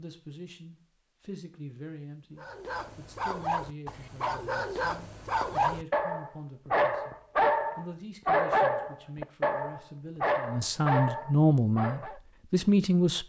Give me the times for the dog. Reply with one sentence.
You can hear the dog from 2.4 to 12.2 s.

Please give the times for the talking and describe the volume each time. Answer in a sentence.
You can hear the talking from 0.0 to 13.2 s, getting louder.